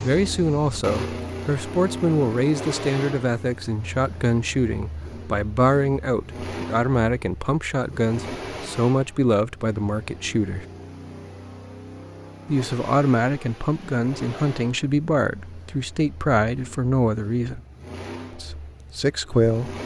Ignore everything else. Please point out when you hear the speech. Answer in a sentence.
You can hear the speech from 0.0 to 10.7 s, from 12.4 to 17.6 s and from 18.4 to 19.8 s.